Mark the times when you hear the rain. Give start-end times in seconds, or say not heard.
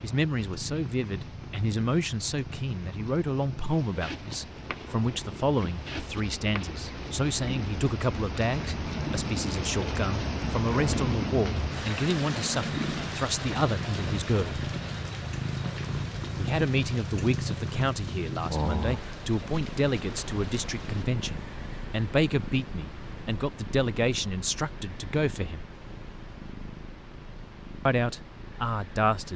0.0-21.1.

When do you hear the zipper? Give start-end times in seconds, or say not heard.
not heard.